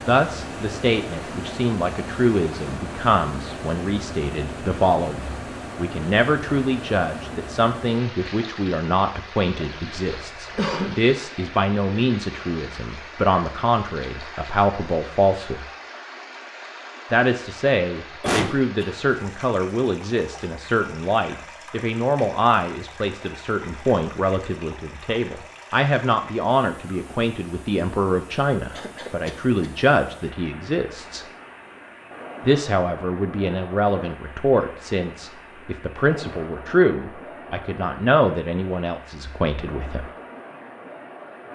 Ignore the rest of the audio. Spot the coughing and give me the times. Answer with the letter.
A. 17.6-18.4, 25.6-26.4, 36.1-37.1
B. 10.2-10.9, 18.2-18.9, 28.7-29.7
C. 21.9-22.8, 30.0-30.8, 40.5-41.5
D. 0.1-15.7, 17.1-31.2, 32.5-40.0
B.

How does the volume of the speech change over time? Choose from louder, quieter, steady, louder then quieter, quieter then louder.
steady.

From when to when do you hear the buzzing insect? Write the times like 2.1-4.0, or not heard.
not heard.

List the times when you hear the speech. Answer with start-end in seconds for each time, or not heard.
0.1-15.7, 17.1-31.2, 32.5-40.0.